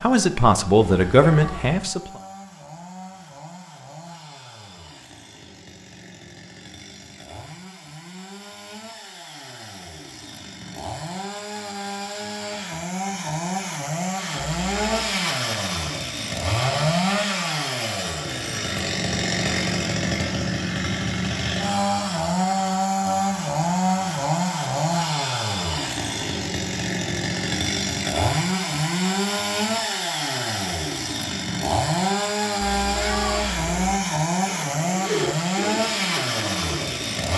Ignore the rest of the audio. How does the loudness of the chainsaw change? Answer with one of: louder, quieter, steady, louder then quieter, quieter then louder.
louder.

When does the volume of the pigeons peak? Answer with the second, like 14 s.
35 s.